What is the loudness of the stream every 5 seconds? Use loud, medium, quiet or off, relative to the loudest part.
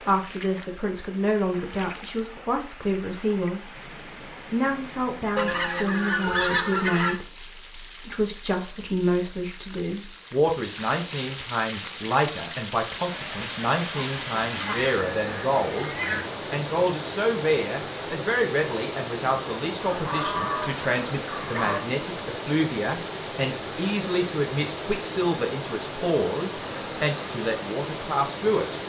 medium, medium, loud, loud, loud, loud.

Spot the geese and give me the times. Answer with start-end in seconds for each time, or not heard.
5.3-7.2, 13.9-16.4, 19.9-21.8.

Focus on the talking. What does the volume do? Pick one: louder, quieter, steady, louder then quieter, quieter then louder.
steady.